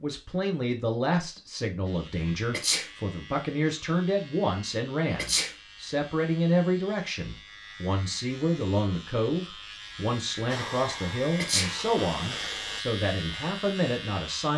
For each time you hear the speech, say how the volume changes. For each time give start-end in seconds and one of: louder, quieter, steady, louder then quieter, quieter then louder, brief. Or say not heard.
0.0-14.5 steady.